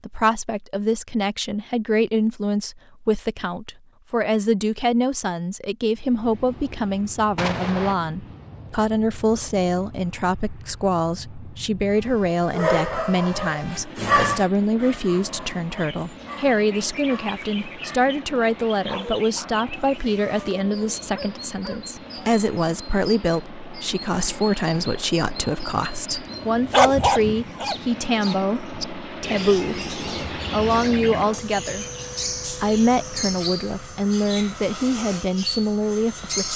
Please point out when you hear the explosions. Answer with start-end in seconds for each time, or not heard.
7.3-8.0.